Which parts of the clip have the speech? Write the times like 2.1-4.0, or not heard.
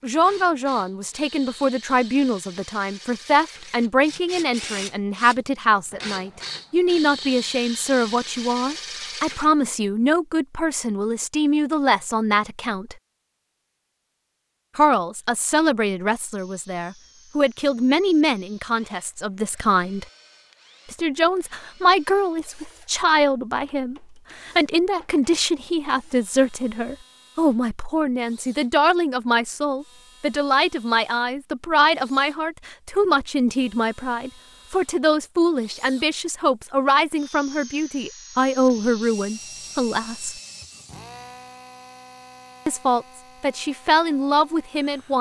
0.0-12.9, 14.8-20.1, 20.9-40.4, 42.6-45.1.